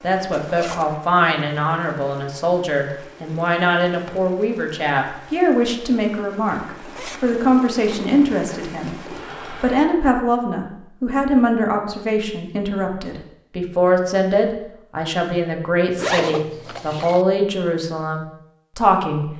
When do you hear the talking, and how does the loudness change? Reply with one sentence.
The talking can be heard from 0.0 to 19.3 s, at a steady volume.